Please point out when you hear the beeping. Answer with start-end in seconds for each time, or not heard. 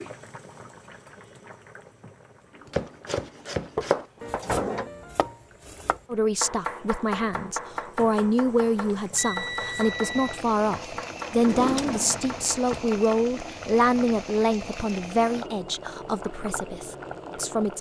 9.2-10.4.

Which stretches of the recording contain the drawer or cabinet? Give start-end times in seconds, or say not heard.
3.8-4.9, 11.3-12.8.